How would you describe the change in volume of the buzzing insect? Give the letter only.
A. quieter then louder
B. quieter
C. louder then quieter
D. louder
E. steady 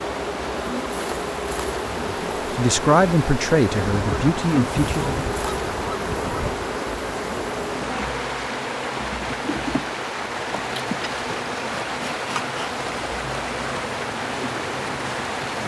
E.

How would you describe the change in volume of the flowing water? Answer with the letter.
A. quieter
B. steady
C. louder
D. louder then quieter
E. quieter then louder
B.